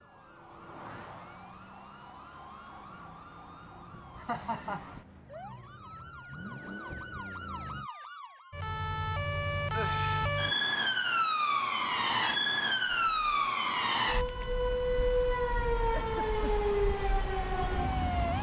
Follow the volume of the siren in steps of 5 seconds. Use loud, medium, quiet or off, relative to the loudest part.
quiet, medium, loud, loud.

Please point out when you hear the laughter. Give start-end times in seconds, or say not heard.
4.2-4.8, 15.9-16.6.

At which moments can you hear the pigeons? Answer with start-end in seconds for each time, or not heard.
not heard.